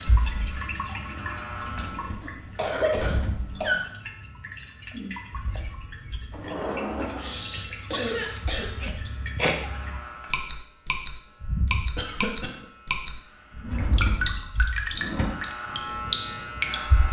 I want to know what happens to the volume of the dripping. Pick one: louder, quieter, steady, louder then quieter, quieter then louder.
louder.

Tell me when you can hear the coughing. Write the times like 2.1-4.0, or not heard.
2.2-3.9, 7.2-8.7, 11.9-12.7.